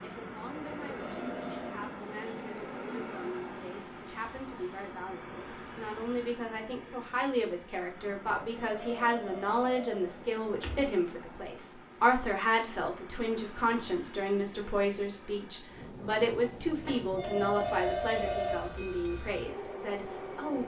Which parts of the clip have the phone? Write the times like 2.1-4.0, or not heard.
0.7-1.8, 8.2-10.9, 16.9-18.8.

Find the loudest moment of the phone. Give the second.
18 s.